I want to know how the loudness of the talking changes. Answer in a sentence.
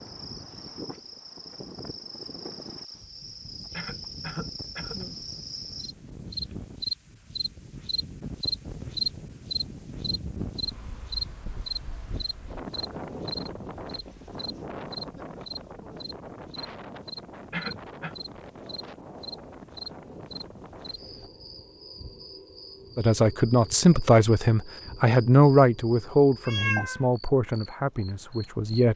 The volume of the talking goes down.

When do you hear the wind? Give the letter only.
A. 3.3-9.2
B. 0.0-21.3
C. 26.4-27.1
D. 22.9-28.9
B.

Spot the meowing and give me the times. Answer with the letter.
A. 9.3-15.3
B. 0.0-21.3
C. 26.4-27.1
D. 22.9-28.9
C.